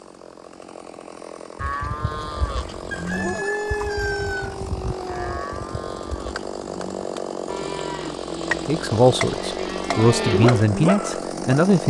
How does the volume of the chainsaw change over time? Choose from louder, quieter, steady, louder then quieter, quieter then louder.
louder.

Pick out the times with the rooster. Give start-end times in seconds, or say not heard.
2.9-4.6.